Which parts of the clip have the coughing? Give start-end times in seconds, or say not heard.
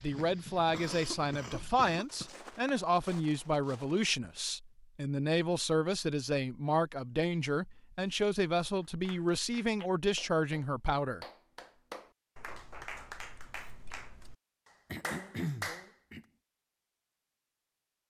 0.7-2.3, 14.9-16.2.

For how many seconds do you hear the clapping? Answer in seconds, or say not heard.
7 s.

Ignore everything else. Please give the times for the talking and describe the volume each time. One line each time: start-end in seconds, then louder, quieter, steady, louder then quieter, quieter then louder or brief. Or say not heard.
0.0-11.2 steady.